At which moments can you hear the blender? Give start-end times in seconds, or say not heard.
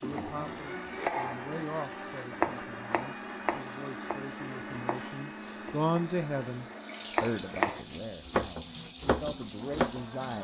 0.0-10.4.